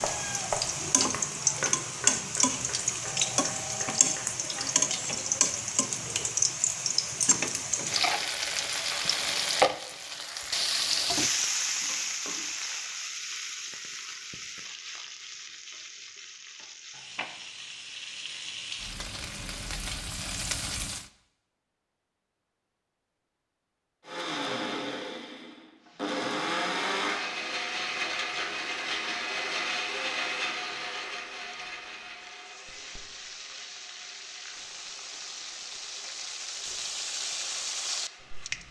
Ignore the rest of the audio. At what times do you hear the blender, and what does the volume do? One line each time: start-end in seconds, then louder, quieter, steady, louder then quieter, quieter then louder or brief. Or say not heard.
24.1-38.6 quieter.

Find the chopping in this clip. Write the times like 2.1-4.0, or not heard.
0.0-4.7.